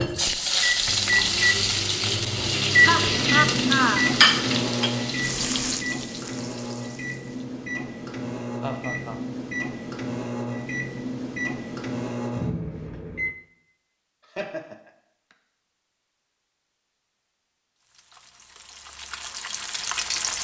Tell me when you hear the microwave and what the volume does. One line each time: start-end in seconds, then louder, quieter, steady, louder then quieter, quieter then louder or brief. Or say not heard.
0.0-13.3 quieter.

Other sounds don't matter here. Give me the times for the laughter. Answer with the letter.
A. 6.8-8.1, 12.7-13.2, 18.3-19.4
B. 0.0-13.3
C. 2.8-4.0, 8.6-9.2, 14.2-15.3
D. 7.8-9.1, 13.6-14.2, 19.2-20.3
C.